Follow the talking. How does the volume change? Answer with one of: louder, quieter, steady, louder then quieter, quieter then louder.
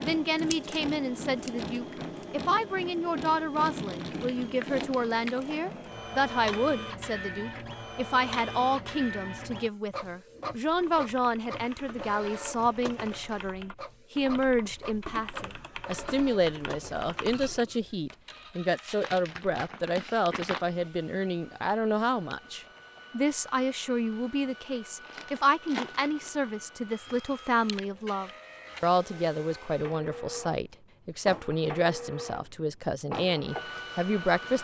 steady.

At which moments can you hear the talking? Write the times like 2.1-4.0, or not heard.
0.0-34.5.